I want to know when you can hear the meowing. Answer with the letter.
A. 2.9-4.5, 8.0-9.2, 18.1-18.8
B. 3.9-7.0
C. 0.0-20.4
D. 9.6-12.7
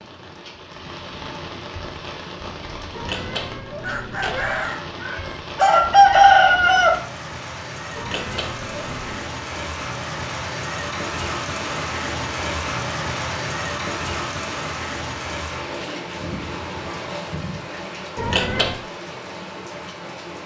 A.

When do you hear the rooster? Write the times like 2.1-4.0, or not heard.
3.9-7.0.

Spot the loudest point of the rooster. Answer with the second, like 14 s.
6 s.